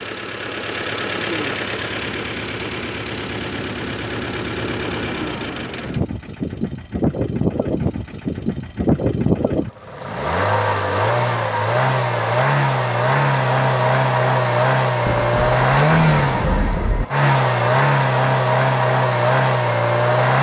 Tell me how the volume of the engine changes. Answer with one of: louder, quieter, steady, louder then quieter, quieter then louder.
louder.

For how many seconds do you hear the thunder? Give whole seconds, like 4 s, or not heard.
2 s.